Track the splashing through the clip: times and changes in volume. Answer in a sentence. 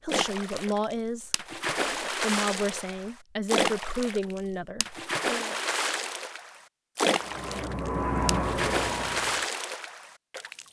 The splashing can be heard from 0.1 to 10.6 s, at a steady volume.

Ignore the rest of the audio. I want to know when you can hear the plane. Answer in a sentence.
The plane can be heard from 7.2 to 9.4 s.